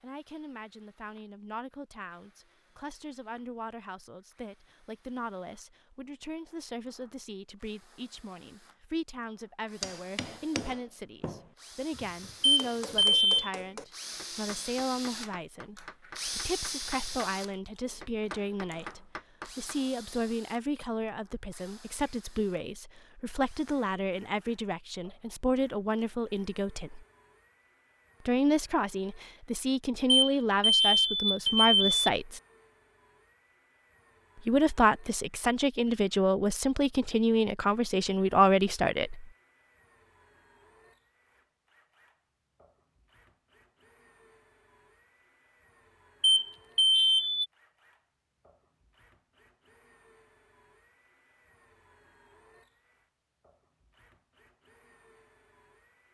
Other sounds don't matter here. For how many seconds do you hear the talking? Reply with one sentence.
The talking can be heard for 36 seconds in total.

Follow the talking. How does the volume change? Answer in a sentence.
The volume of the talking goes up.